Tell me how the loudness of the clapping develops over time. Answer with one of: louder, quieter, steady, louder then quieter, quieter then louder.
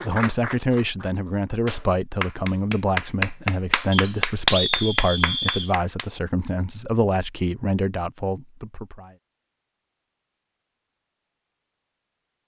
louder then quieter.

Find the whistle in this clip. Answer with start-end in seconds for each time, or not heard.
3.9-5.7.